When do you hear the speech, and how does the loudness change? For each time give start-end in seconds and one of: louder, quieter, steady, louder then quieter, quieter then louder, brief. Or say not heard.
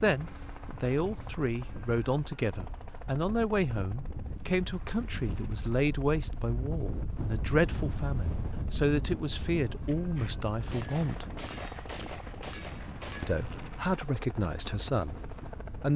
0.0-11.2 steady
13.2-15.9 brief.